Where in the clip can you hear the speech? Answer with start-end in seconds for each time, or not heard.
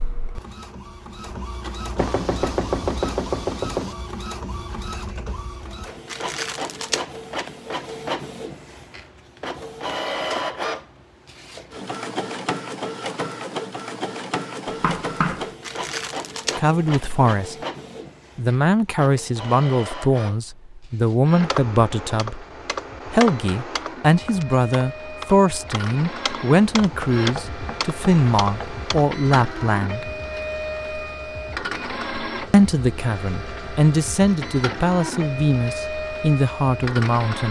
16.6-17.6, 18.4-22.4, 23.1-30.1, 32.5-37.4.